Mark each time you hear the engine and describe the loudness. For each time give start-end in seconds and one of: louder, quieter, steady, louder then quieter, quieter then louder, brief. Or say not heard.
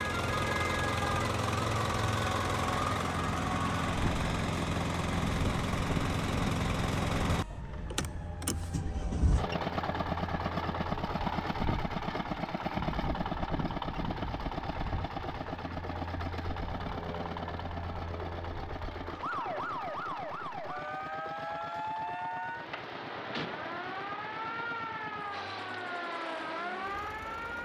0.0-27.6 quieter.